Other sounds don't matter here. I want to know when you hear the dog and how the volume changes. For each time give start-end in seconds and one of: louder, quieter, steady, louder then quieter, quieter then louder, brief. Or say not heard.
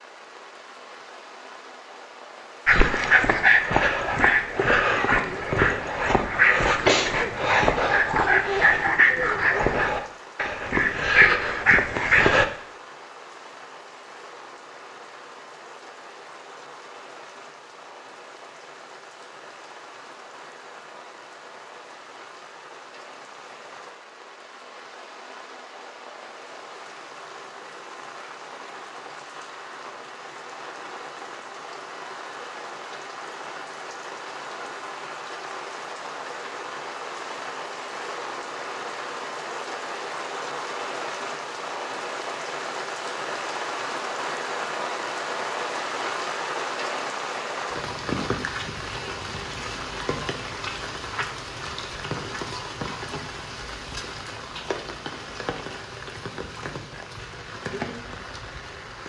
2.6-12.4 steady.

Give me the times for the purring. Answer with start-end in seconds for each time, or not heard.
not heard.